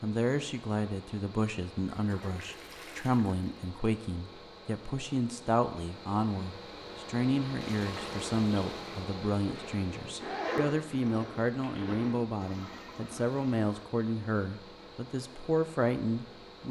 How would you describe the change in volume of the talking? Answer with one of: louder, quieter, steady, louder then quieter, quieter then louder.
steady.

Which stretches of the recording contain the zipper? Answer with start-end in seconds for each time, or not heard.
9.4-12.2.